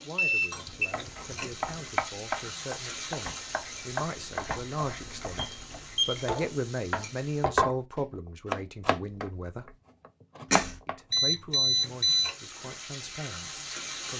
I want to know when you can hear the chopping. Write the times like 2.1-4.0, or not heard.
0.7-11.2.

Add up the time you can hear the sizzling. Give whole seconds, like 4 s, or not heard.
10 s.